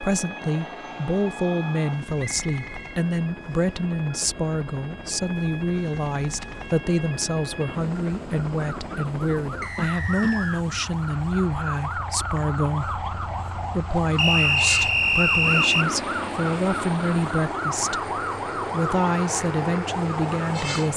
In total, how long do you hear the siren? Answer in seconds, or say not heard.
21 s.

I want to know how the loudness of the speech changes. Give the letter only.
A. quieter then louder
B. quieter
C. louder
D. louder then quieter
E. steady
E.